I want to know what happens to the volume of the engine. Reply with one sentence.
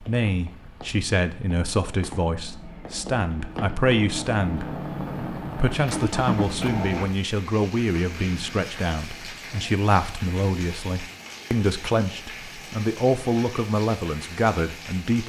The volume of the engine goes up.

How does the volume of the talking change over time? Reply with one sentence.
The loudness of the talking stays about the same.